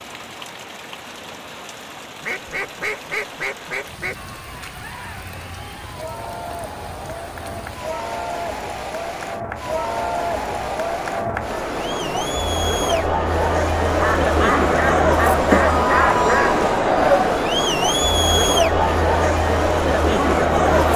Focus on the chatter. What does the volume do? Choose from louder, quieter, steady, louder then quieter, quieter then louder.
louder.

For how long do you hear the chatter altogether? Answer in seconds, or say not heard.
17 s.